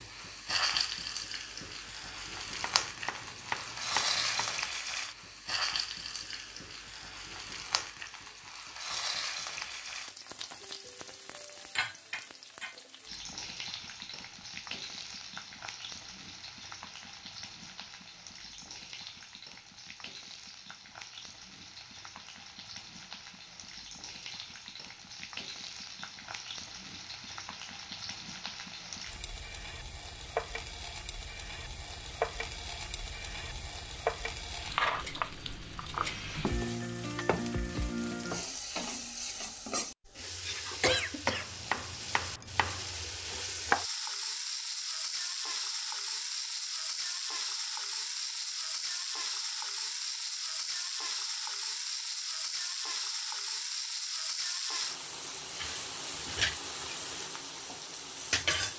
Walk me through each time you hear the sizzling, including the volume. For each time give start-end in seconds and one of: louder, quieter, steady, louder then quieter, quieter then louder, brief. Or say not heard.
0.0-58.7 quieter then louder.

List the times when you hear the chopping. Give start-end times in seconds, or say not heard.
2.6-4.5, 41.2-42.9.